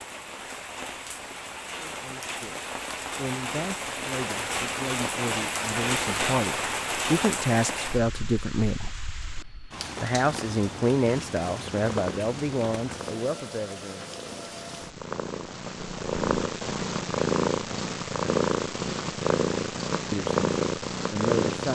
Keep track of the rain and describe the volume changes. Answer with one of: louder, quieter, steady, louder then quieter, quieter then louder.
louder then quieter.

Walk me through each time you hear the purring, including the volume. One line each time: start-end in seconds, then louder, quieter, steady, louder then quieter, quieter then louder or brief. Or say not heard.
11.4-21.6 louder.